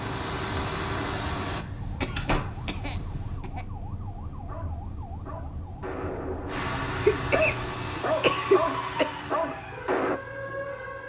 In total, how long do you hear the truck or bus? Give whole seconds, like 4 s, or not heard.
8 s.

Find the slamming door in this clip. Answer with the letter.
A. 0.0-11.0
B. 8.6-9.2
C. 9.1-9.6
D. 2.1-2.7
D.